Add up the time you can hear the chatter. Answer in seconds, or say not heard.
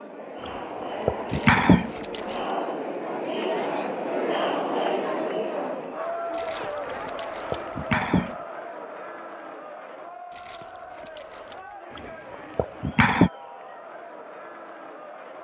15 s.